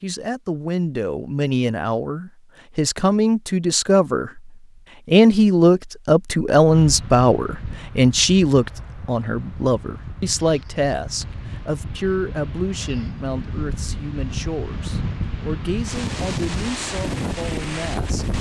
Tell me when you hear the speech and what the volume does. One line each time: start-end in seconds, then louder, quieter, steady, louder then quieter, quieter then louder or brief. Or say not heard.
0.0-18.2 louder then quieter.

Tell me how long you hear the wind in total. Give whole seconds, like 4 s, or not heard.
12 s.